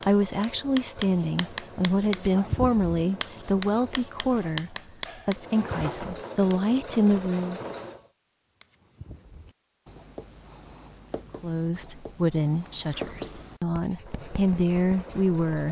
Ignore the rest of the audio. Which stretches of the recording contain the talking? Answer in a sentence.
You can hear the talking from 0.1 to 7.6 s and from 11.4 to 15.6 s.